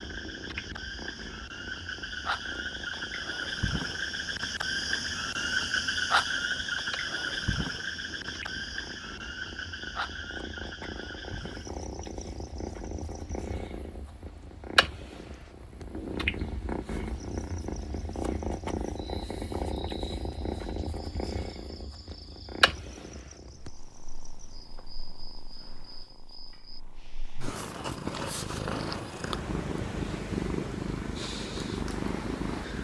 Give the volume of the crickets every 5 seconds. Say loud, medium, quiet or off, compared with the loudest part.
loud, loud, quiet, quiet, quiet, quiet, off.